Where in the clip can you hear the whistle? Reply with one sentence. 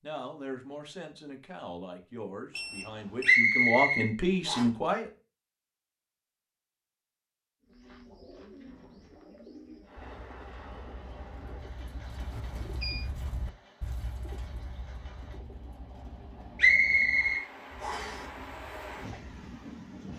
The whistle can be heard from 3.2 to 4.7 s and from 16.6 to 18.2 s.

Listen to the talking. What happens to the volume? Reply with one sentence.
The volume of the talking goes up.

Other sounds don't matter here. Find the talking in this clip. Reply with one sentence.
You can hear the talking from 0.0 to 5.1 s.